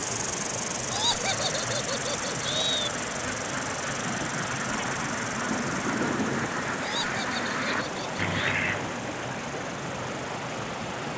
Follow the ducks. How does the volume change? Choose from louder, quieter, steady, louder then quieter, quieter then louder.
louder.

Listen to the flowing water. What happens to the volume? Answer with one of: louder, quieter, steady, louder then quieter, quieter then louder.
steady.